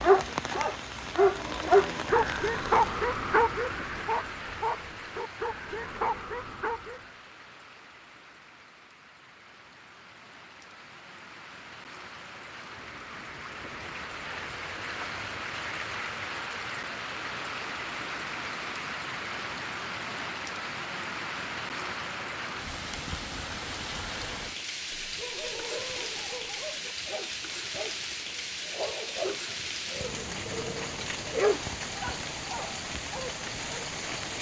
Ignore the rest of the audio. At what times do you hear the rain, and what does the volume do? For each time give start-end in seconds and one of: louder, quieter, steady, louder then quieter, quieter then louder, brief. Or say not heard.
0.0-34.3 quieter then louder.